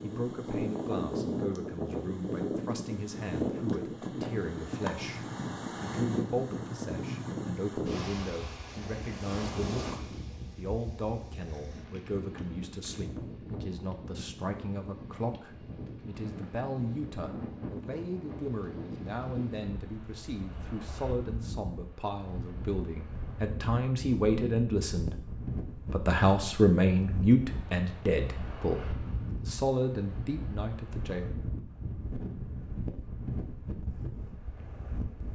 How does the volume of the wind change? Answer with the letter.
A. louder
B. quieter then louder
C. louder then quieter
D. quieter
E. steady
D.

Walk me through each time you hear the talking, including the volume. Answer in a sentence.
The talking can be heard from 0.0 to 31.3 s, getting louder.